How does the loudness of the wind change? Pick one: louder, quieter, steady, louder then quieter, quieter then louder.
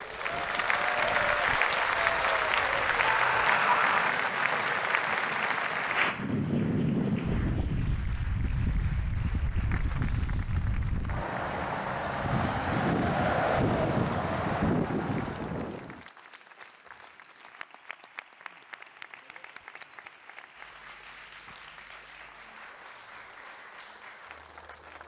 louder.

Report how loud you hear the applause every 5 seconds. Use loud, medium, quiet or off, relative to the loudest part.
loud, medium, quiet, quiet, quiet.